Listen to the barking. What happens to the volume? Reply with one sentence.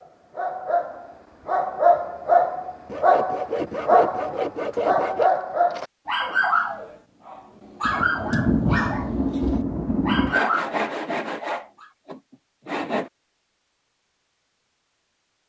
The loudness of the barking goes down.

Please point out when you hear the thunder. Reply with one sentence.
The thunder can be heard from 7.8 to 10.4 s.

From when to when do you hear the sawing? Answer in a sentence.
You can hear the sawing from 2.9 to 5.3 s and from 10.2 to 13.1 s.